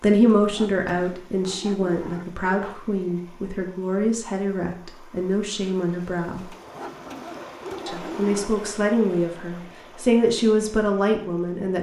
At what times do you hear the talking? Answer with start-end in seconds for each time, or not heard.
0.0-6.5, 7.8-11.7.